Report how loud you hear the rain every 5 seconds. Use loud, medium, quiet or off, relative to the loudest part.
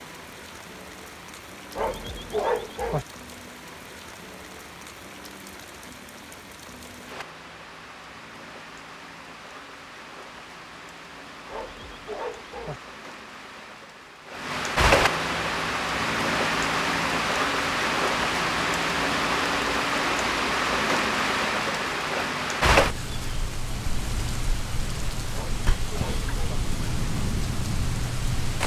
quiet, quiet, medium, loud, loud, medium.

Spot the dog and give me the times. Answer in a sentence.
The dog can be heard from 1.8 to 3.0 s, from 11.5 to 12.8 s and from 25.3 to 26.6 s.